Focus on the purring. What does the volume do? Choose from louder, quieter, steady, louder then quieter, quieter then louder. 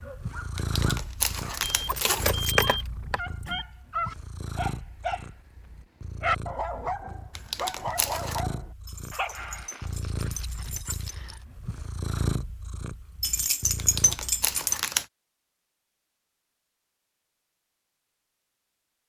quieter then louder.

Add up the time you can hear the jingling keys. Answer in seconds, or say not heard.
6 s.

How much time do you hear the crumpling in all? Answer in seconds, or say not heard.
4 s.